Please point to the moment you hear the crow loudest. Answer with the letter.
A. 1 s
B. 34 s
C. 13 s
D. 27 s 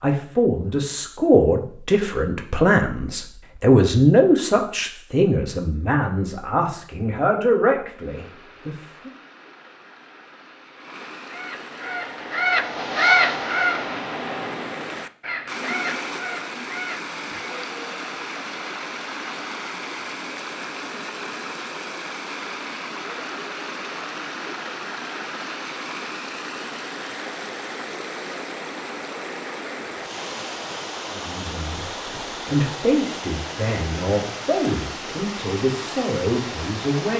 C.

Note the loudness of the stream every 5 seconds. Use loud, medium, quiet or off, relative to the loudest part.
off, quiet, medium, loud, loud, loud, loud, loud.